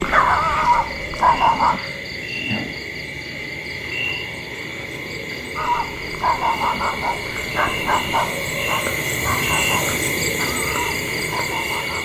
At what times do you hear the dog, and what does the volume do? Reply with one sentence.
The dog can be heard briefly from 0.0 to 1.8 s; and from 5.5 to 12.0 s, getting quieter.